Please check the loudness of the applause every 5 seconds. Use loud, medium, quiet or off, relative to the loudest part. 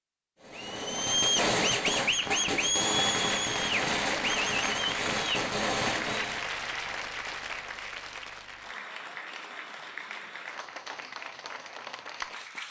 loud, loud, medium.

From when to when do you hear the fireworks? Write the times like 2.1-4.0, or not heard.
0.4-6.5.